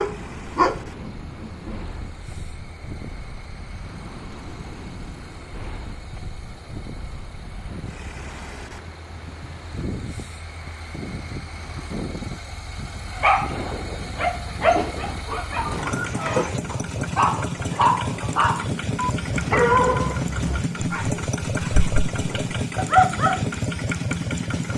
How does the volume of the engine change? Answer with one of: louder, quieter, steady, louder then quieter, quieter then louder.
louder.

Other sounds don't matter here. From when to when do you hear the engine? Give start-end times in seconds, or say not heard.
0.0-24.7.